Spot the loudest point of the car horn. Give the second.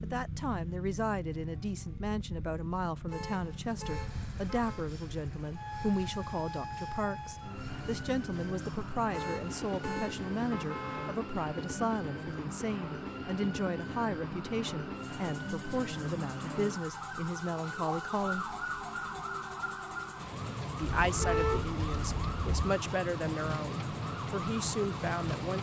21 s.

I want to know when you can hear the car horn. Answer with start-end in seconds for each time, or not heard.
3.0-4.9, 9.1-11.2, 20.9-22.8.